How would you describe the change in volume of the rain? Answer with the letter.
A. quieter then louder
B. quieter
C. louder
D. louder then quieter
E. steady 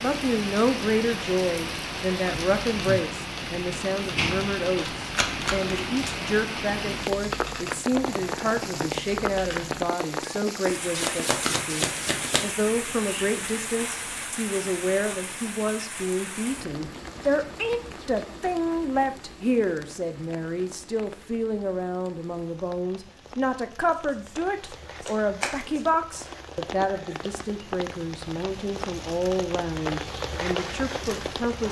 A.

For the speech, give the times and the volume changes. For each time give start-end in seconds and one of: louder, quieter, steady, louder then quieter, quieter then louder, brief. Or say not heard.
0.0-31.6 steady.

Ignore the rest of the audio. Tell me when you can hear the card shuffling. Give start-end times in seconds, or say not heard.
5.0-5.9, 10.9-12.6, 23.9-25.9.